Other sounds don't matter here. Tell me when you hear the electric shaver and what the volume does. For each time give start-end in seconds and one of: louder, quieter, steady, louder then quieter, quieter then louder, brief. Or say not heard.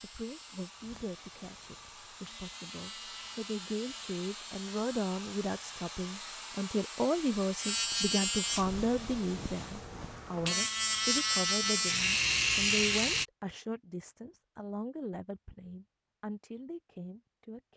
0.0-13.2 louder.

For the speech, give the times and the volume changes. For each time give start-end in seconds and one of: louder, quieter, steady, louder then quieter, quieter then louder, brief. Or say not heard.
0.0-17.7 louder then quieter.